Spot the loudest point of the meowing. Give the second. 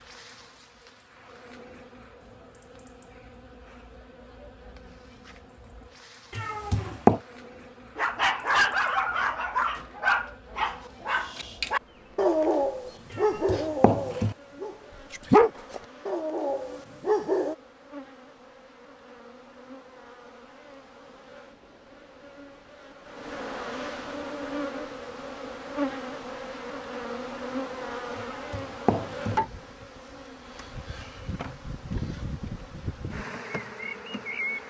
7 s.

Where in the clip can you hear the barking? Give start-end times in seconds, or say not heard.
8.0-17.6.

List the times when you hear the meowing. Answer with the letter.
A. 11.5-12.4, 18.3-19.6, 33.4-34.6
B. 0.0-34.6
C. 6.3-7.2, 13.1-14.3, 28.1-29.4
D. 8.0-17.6
C.